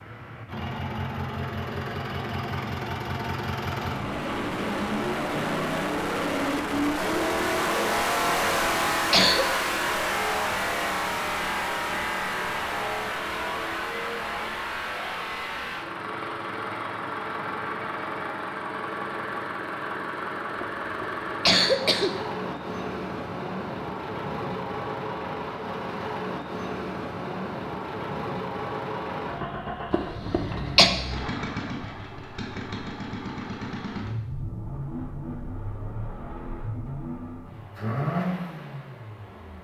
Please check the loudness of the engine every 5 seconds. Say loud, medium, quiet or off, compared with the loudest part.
medium, loud, loud, medium, medium, medium, medium, medium.